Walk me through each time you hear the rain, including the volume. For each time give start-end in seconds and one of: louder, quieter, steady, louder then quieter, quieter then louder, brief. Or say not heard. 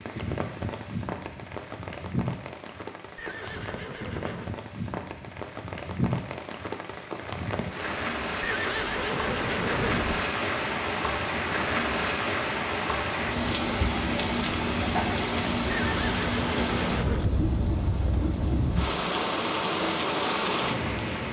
0.0-21.2 louder.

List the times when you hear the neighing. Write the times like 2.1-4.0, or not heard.
3.1-4.5, 8.4-10.2, 15.7-17.6.